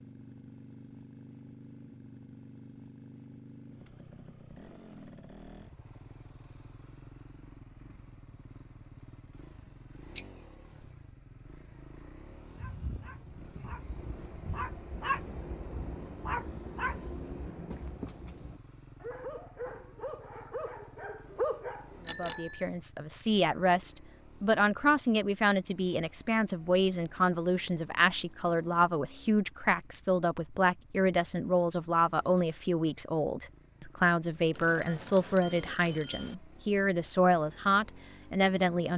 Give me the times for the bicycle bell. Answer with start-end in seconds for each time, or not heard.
10.2-10.8, 22.1-22.6, 34.5-36.4.